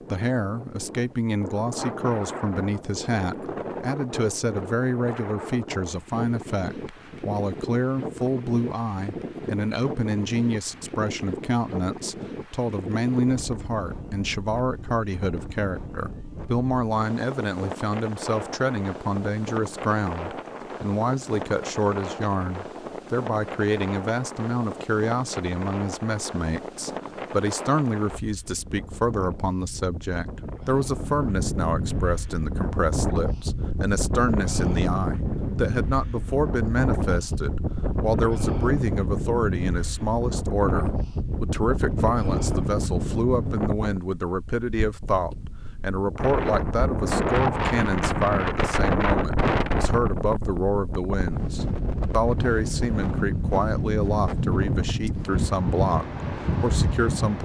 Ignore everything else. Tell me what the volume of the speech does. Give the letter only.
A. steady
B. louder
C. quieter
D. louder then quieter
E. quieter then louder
A.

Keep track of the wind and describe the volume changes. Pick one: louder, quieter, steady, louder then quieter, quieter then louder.
louder.